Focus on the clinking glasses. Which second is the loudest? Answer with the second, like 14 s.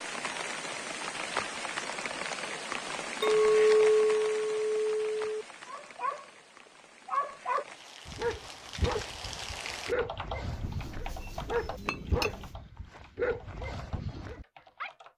4 s.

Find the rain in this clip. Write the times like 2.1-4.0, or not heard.
0.0-9.9.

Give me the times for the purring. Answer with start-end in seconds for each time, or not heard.
not heard.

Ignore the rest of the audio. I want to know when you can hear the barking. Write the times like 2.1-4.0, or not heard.
5.7-6.2, 7.0-14.9.